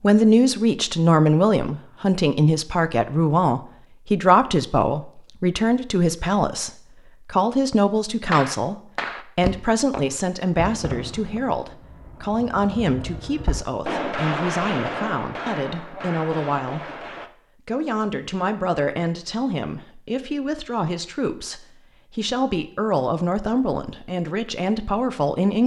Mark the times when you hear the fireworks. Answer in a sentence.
The fireworks can be heard from 8.3 to 17.3 s.